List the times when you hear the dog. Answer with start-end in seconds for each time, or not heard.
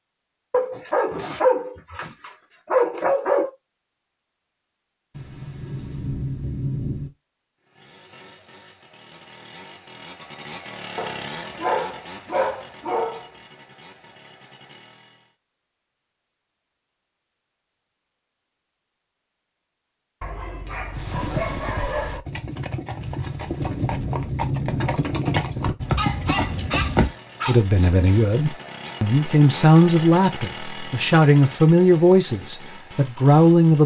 0.5-3.5, 10.9-13.2, 20.2-22.2, 25.9-27.6.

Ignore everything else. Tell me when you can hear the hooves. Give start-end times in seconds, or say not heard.
20.9-27.1.